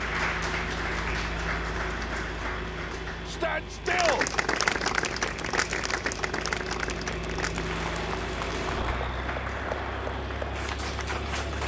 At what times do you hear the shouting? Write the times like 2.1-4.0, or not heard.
3.2-4.2.